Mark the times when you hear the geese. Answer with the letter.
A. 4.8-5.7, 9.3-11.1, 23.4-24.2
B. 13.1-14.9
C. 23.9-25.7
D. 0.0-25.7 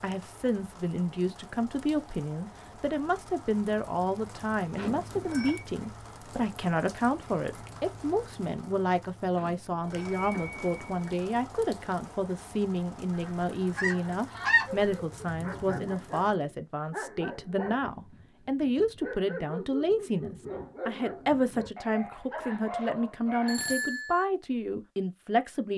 B.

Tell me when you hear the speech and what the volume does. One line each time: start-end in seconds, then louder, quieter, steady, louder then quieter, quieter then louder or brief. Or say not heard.
0.0-25.7 steady.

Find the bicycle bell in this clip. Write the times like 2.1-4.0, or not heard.
4.8-5.7, 9.3-11.1, 23.4-24.2.